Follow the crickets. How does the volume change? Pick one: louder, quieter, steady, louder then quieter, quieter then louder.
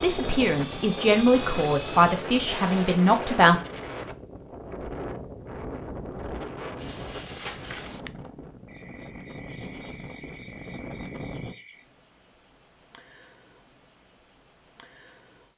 quieter.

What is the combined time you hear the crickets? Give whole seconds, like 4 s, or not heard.
9 s.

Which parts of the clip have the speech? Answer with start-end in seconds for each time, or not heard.
0.0-3.5.